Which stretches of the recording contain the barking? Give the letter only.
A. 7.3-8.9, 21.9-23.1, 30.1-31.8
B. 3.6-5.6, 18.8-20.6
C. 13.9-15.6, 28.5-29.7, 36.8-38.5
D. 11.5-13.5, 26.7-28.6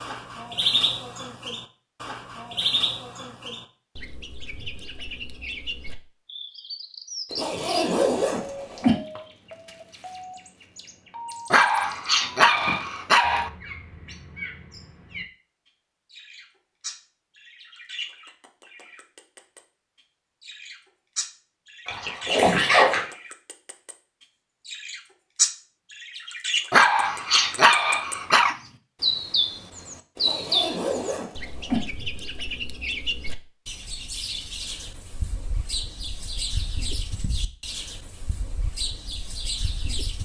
D.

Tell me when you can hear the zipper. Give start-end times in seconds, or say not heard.
7.3-8.9, 21.9-23.1, 30.1-31.8.